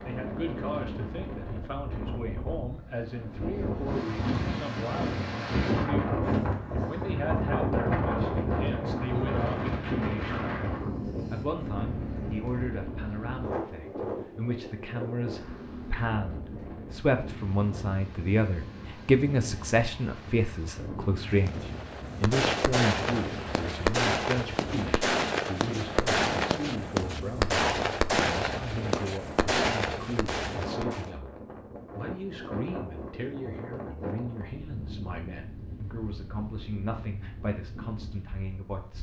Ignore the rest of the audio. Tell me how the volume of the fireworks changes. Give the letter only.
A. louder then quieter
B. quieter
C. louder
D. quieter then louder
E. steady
E.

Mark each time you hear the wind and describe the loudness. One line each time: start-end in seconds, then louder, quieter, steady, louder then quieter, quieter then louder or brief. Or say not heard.
0.0-38.9 quieter.